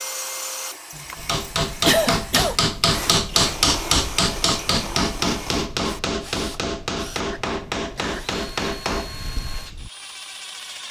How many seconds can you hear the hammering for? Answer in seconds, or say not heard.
9 s.